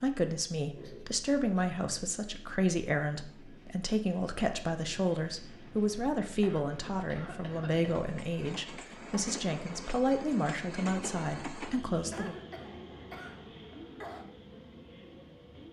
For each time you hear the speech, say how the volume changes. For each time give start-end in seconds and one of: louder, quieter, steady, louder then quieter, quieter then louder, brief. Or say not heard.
0.0-12.4 steady.